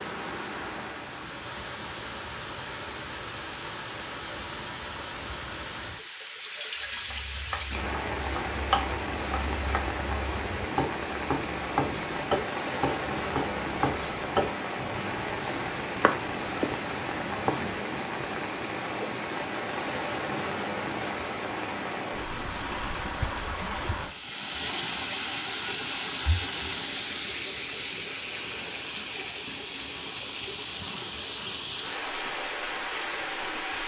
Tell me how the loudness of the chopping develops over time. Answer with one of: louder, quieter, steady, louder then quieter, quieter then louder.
steady.